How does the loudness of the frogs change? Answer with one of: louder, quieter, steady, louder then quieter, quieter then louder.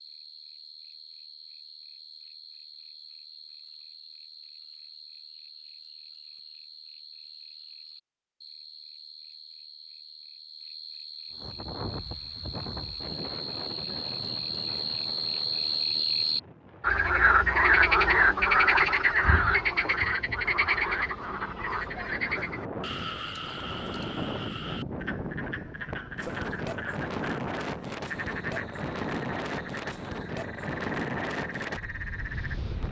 louder then quieter.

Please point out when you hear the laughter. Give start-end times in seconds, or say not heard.
not heard.